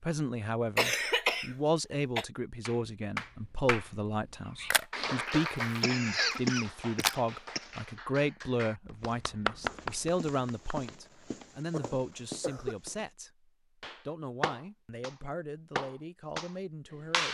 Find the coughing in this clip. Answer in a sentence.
The coughing can be heard from 0.8 to 2.2 s, from 5.8 to 7.7 s and from 11.7 to 12.8 s.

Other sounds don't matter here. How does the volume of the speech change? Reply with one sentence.
The loudness of the speech goes down.